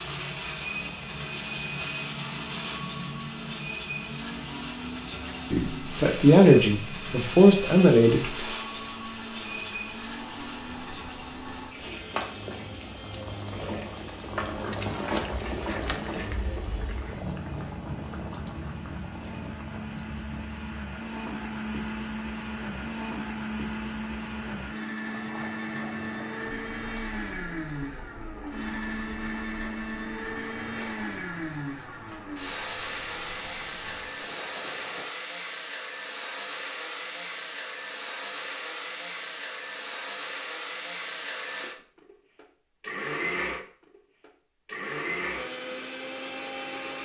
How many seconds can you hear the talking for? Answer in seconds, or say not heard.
3 s.